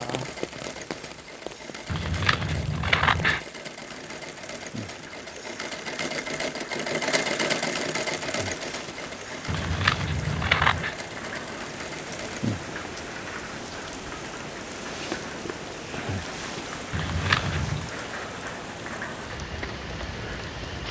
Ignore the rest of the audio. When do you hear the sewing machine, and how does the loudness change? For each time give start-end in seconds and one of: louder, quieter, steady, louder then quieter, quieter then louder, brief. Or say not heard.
0.0-12.7 louder then quieter.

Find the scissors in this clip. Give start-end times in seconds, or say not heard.
1.9-3.4, 9.4-10.9, 16.9-17.9.